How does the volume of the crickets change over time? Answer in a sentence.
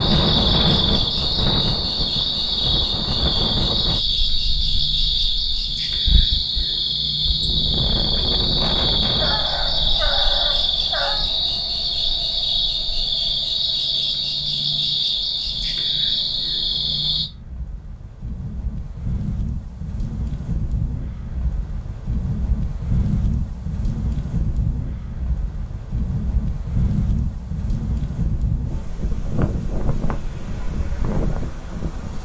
The loudness of the crickets stays about the same.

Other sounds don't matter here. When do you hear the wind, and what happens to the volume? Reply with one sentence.
You can hear the wind from 0.0 to 32.2 s, getting quieter then louder.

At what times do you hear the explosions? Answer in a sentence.
You can't hear the explosions here.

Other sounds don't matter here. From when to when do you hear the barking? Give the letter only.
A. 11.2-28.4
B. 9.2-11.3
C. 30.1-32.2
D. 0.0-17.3
B.